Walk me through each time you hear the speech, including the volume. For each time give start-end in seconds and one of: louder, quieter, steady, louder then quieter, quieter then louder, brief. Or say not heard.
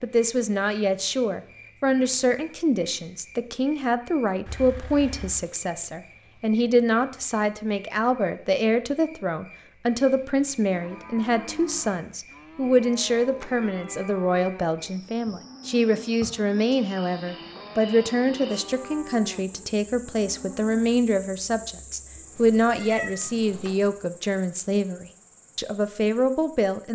0.0-26.9 steady.